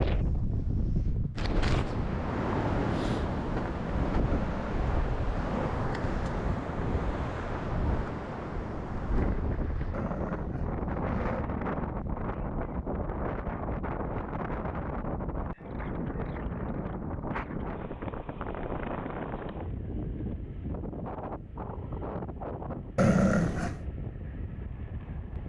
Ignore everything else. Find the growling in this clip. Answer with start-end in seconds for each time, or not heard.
4.3-5.7, 9.9-11.4, 22.9-23.8.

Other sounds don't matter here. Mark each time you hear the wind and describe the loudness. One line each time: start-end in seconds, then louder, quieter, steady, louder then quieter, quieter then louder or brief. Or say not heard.
0.0-25.4 quieter.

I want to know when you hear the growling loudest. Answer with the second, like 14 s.
23 s.